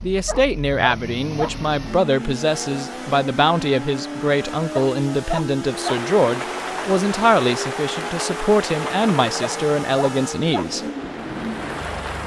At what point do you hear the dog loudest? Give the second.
5 s.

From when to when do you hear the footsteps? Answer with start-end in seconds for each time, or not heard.
not heard.